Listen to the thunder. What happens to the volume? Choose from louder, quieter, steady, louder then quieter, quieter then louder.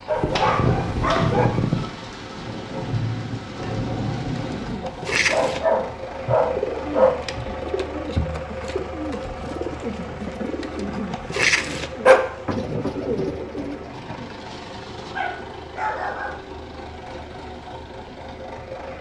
louder.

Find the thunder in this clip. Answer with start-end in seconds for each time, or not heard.
0.4-4.8.